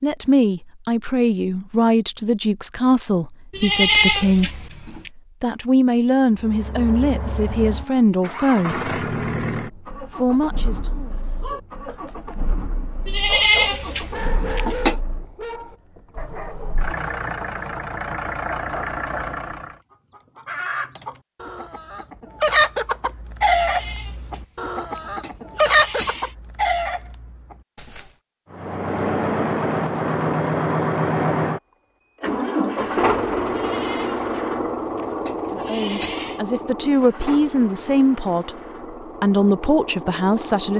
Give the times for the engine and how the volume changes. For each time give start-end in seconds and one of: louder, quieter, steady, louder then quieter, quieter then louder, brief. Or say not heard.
6.3-19.8 quieter then louder
28.5-40.7 quieter.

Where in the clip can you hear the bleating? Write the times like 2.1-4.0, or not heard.
3.5-5.1, 13.1-14.9, 23.6-24.1, 25.2-26.3, 33.6-34.1, 35.0-36.4.